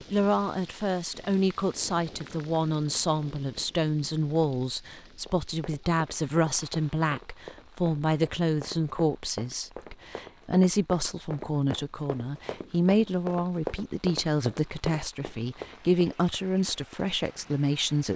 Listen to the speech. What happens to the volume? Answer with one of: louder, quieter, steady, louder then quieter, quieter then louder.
steady.